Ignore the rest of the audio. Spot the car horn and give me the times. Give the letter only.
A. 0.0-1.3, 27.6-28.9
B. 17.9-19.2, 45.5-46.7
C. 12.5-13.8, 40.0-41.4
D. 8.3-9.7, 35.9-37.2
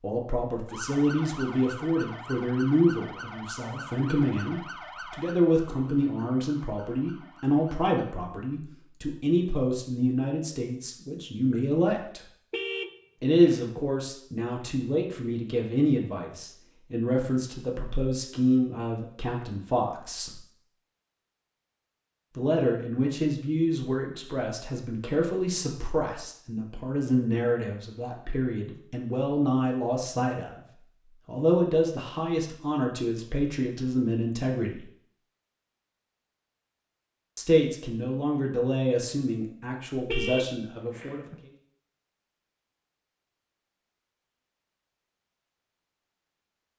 C.